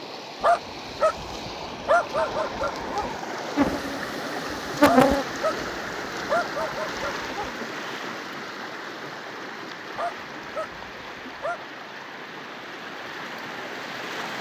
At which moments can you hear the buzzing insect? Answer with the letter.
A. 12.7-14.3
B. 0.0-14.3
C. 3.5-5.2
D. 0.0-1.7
C.